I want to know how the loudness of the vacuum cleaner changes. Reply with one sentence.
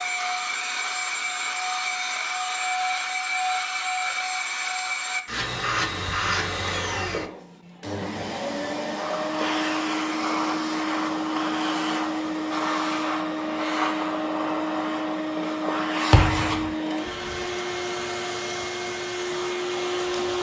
The volume of the vacuum cleaner stays about the same.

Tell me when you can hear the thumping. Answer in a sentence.
You can hear the thumping from 16.1 to 16.7 s.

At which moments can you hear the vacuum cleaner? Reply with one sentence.
The vacuum cleaner can be heard from 0.0 to 20.3 s.